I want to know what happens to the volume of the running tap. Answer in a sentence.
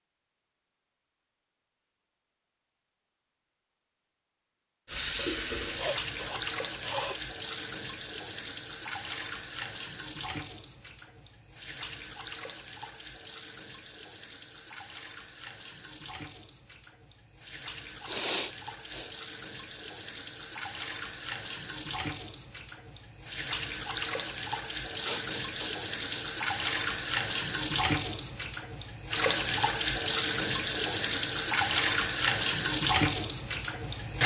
The loudness of the running tap goes down, then up.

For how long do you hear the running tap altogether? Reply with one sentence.
The running tap can be heard for 29 seconds in total.